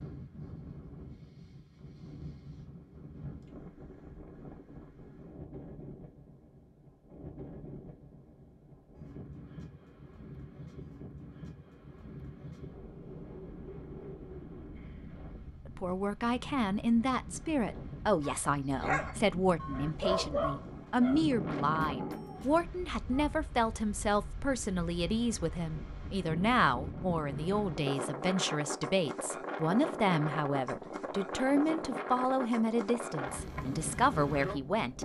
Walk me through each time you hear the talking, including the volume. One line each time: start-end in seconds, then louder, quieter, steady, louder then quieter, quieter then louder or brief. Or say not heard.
15.7-35.0 steady.